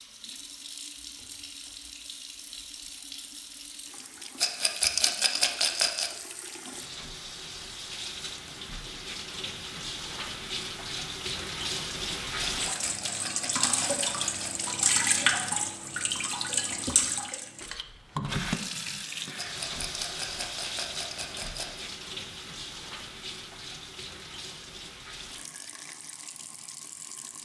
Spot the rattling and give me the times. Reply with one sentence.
The rattling can be heard from 4.3 to 6.1 s, from 12.7 to 14.7 s and from 19.4 to 21.9 s.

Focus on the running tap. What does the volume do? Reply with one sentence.
The volume of the running tap goes up, then down.